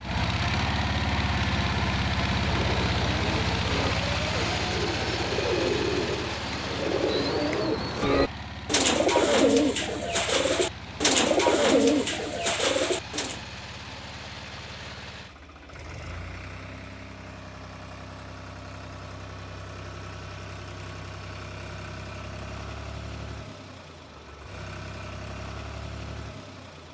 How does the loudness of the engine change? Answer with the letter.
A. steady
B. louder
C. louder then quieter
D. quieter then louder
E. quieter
E.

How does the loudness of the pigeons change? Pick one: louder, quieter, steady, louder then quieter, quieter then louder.
louder.